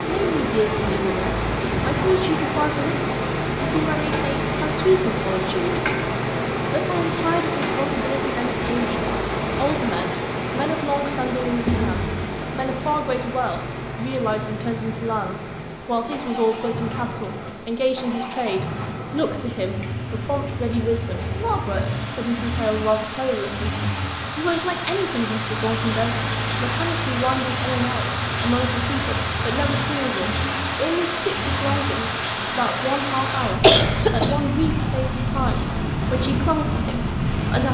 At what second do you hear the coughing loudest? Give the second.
34 s.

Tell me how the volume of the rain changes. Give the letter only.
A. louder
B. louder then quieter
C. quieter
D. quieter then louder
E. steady
D.